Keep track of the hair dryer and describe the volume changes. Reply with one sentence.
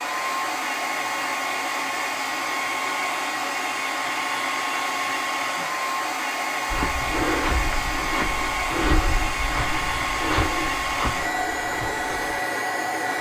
The loudness of the hair dryer stays about the same.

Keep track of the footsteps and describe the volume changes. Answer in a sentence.
The volume of the footsteps goes down.